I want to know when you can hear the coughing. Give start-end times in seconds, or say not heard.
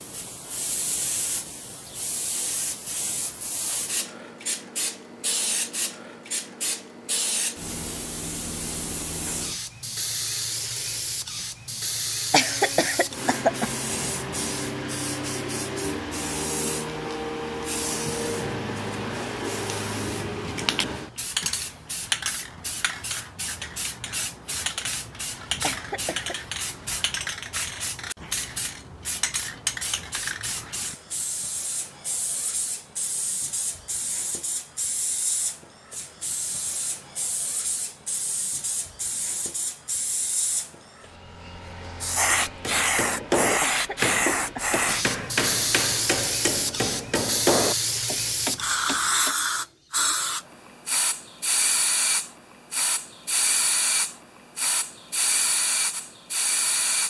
12.3-13.7, 25.6-26.4, 43.6-44.8.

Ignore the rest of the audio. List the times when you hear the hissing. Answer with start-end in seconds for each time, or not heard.
0.0-57.0.